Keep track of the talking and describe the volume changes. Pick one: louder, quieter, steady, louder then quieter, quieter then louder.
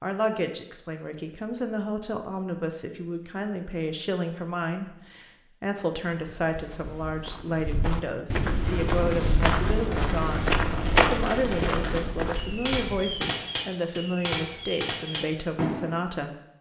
steady.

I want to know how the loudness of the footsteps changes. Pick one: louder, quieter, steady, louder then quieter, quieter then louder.
louder then quieter.